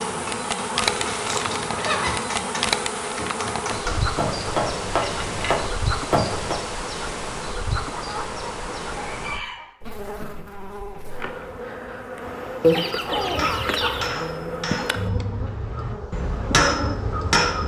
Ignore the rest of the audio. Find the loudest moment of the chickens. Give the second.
13 s.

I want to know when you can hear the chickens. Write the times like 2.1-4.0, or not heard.
0.8-2.4, 7.8-9.8, 12.6-14.2.